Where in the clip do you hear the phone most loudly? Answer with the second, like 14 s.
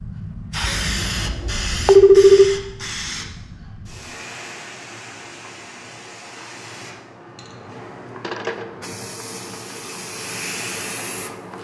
2 s.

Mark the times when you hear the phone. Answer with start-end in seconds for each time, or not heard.
0.6-2.5, 8.2-8.8.